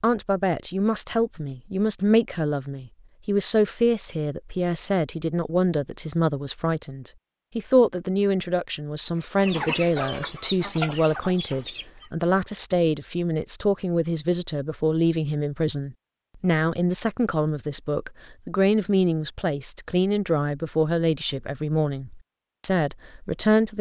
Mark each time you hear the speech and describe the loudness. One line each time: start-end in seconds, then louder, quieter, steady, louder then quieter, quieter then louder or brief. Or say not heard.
0.0-23.7 steady.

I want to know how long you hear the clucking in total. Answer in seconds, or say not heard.
3 s.